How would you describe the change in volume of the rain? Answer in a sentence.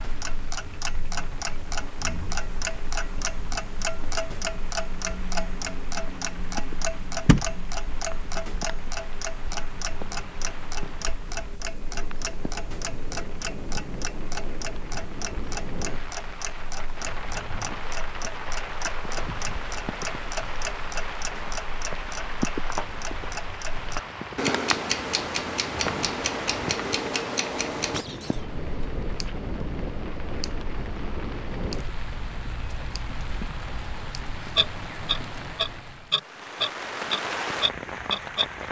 The volume of the rain goes up.